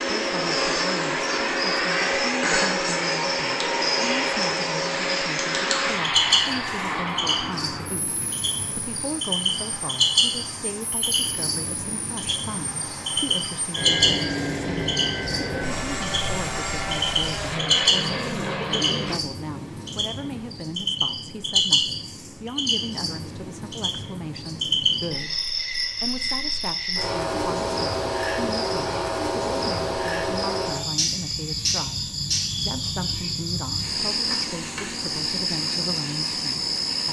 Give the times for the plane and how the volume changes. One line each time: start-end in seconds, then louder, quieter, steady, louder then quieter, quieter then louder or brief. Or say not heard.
0.0-19.2 quieter then louder.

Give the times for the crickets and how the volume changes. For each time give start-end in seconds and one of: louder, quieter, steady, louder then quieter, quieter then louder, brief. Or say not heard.
0.0-37.0 steady.